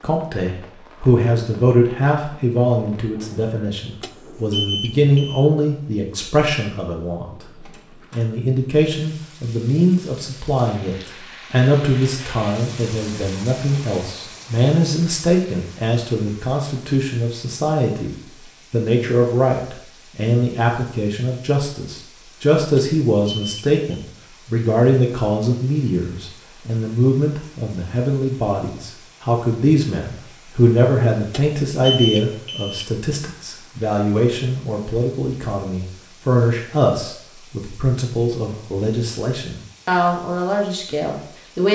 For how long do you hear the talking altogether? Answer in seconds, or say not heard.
41 s.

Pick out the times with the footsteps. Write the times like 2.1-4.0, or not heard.
not heard.